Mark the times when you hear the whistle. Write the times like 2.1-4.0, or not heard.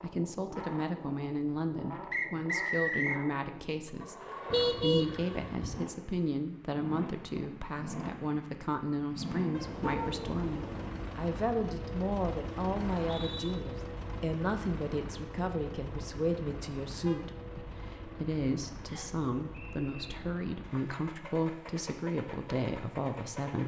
2.1-3.2, 12.8-13.6, 18.9-20.1.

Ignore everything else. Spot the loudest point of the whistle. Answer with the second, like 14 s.
3 s.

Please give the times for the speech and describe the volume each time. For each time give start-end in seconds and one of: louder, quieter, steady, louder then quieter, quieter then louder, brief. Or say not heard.
0.0-23.6 steady.